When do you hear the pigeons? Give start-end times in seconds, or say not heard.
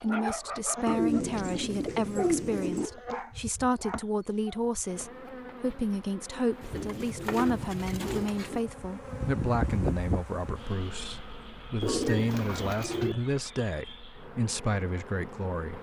0.8-2.9, 6.6-8.6, 11.8-13.2.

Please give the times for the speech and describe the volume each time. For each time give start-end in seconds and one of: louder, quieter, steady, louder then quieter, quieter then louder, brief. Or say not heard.
0.0-15.7 steady.